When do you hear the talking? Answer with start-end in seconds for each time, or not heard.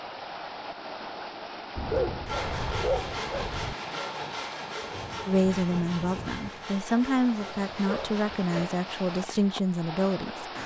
5.2-10.4.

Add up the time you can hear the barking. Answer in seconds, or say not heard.
3 s.